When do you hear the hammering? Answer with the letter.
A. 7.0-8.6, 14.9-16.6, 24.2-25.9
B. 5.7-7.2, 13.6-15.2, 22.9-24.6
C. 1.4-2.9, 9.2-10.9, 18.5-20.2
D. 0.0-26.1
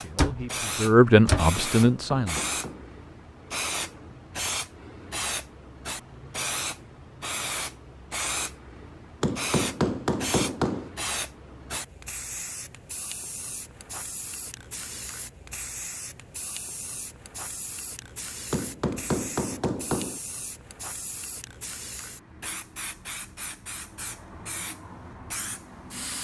C.